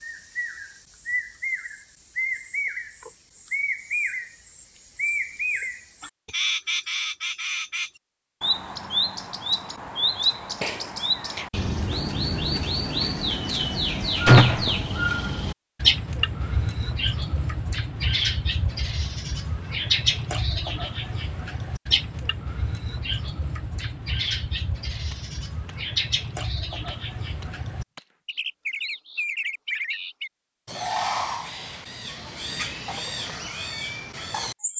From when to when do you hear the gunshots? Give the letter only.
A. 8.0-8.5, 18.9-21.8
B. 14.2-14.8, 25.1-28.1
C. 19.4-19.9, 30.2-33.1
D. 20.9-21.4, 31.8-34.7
B.